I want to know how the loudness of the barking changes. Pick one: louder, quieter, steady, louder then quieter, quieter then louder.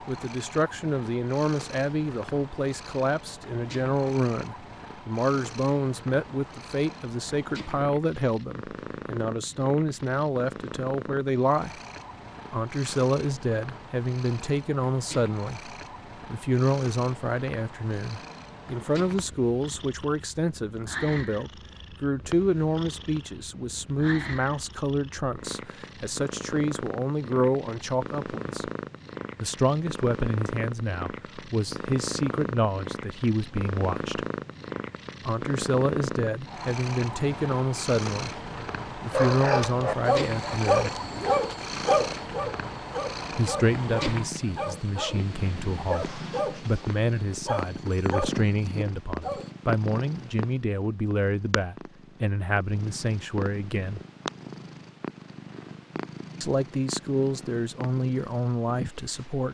quieter.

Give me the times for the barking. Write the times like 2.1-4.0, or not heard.
39.1-49.5.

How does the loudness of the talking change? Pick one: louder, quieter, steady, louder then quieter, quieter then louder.
steady.